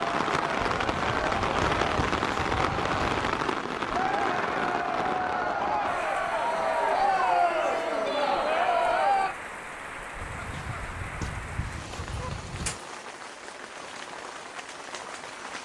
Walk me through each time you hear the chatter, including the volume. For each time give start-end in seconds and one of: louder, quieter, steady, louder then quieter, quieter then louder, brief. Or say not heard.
0.0-9.3 louder.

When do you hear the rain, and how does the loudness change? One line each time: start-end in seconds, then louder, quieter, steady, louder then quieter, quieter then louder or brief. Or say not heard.
0.0-15.6 quieter.